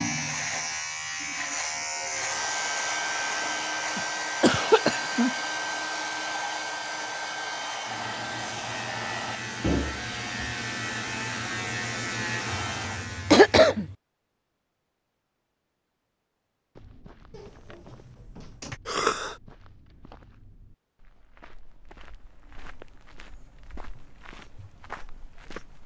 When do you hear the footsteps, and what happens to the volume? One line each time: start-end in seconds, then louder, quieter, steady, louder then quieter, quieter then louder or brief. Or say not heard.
16.8-25.8 louder.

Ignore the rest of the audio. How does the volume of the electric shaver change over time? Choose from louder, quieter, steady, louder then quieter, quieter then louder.
quieter then louder.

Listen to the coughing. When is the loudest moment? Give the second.
13 s.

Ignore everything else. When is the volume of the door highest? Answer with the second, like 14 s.
10 s.